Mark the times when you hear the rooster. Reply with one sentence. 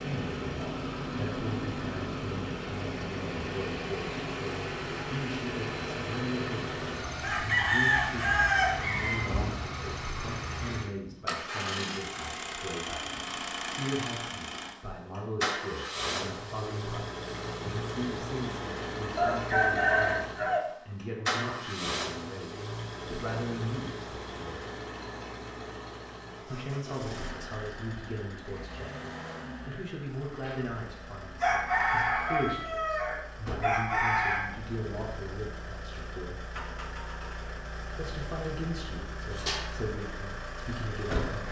You can hear the rooster from 7.2 to 9.2 s, from 19.1 to 20.6 s and from 31.4 to 34.5 s.